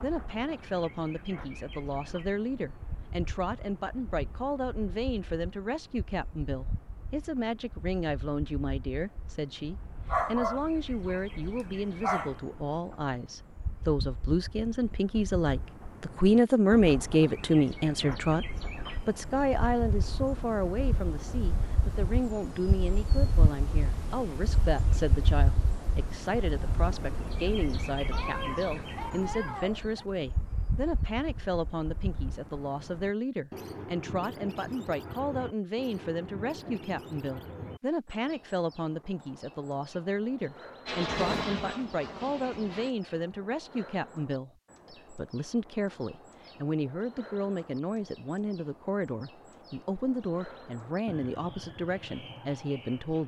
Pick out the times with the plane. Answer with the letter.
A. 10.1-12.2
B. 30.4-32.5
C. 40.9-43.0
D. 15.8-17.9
C.